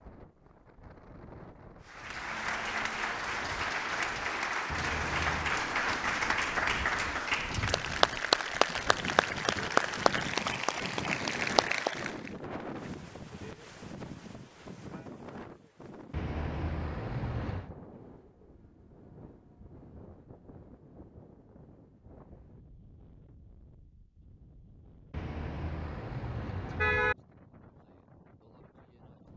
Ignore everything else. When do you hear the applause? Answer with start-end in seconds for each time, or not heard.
1.9-12.3.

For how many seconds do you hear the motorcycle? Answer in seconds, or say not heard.
not heard.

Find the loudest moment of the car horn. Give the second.
27 s.